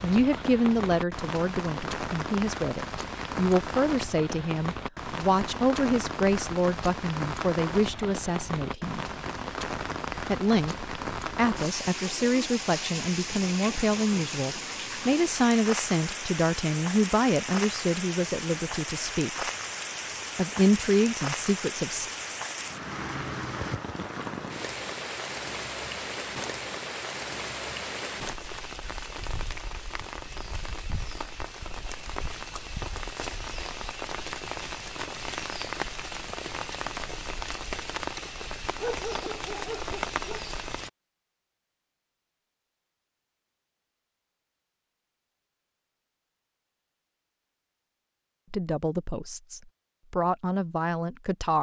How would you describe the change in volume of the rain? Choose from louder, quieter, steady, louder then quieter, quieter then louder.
steady.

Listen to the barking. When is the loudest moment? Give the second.
39 s.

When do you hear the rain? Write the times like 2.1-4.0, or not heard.
0.0-40.9.